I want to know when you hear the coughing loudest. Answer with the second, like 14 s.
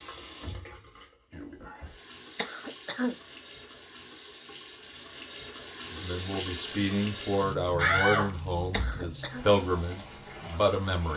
3 s.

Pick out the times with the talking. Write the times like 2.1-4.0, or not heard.
5.9-11.1.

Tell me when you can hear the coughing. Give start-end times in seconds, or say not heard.
2.4-3.1, 8.7-9.4.